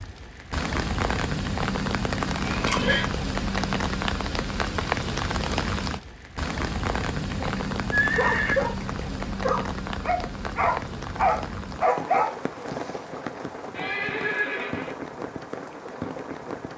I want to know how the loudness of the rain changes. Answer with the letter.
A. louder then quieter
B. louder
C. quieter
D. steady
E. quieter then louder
C.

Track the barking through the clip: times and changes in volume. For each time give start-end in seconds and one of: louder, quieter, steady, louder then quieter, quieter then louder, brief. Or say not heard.
7.4-12.3 quieter then louder.